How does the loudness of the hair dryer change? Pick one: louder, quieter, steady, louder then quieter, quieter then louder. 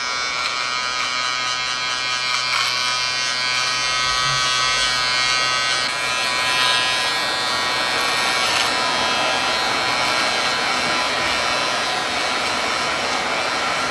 louder.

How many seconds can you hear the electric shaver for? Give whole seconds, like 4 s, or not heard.
14 s.